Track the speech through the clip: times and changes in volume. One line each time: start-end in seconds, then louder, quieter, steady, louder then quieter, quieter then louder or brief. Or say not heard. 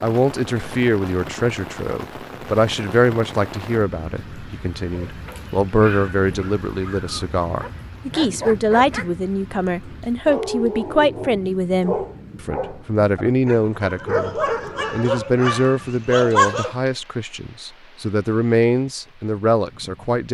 0.0-20.3 steady.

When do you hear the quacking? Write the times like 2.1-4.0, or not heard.
not heard.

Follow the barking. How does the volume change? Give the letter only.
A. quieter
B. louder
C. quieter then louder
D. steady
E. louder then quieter
B.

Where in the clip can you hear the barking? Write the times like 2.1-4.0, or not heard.
4.9-9.1, 10.2-16.8.